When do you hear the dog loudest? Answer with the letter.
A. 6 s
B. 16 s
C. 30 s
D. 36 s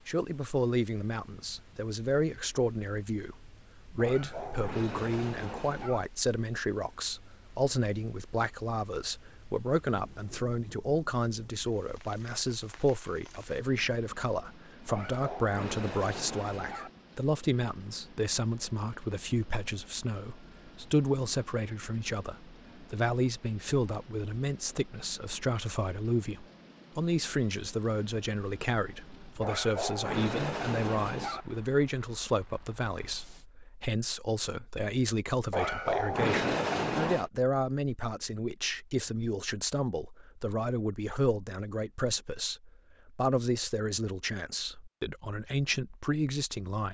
D.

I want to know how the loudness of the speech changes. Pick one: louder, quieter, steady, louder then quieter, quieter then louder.
steady.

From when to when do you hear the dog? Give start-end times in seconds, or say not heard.
4.0-6.0, 14.8-16.9, 29.4-31.4, 35.5-37.3.